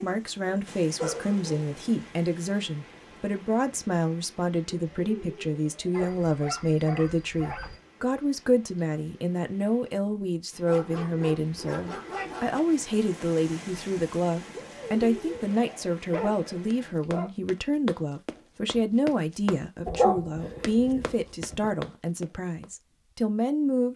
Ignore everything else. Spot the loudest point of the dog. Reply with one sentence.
The loudest moment of the dog is at 20 seconds.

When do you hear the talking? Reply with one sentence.
You can hear the talking from 0.0 to 23.9 s.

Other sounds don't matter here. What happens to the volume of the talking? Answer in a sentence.
The loudness of the talking stays about the same.